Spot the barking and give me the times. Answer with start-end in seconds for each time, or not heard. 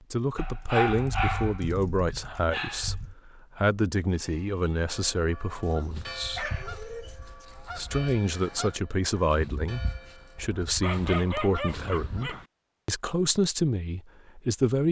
0.3-3.1, 5.7-7.5, 10.8-12.4.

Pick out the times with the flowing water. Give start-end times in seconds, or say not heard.
not heard.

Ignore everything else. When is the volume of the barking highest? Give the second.
1 s.